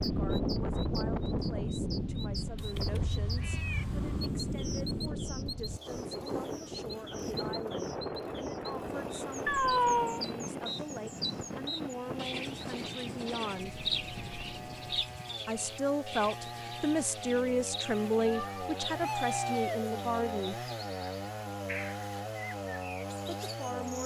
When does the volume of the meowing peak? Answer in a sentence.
The loudest moment of the meowing is at 10 seconds.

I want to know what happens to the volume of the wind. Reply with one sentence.
The loudness of the wind goes down.